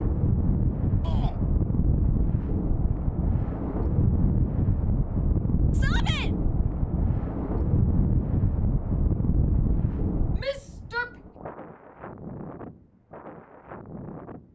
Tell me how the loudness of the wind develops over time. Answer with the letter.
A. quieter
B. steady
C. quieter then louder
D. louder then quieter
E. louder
A.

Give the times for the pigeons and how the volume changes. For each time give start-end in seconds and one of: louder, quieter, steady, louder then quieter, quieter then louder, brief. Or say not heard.
not heard.